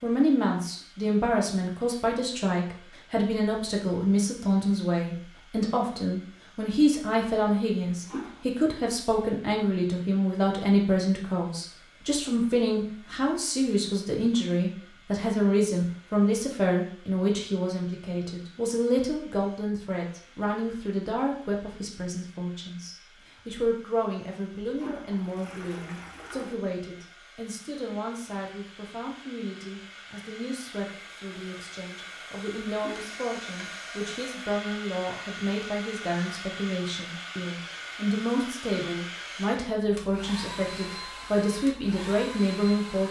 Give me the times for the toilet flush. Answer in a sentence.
You can hear the toilet flush from 7.8 to 8.4 s, from 24.6 to 26.6 s and from 32.6 to 33.1 s.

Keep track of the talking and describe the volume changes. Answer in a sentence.
The loudness of the talking goes down, then up.